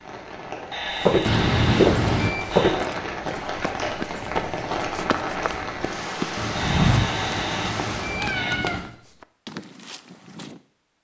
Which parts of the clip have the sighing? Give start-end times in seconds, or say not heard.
not heard.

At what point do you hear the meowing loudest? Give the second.
2 s.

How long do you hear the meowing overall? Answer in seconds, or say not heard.
4 s.